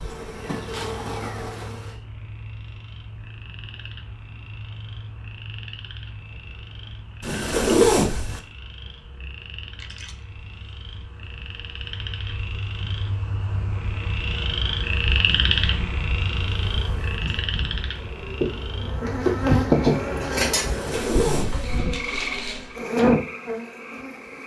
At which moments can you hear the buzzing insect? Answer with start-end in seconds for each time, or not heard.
0.0-1.8, 16.4-24.4.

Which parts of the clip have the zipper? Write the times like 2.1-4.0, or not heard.
7.2-8.4, 20.6-21.8.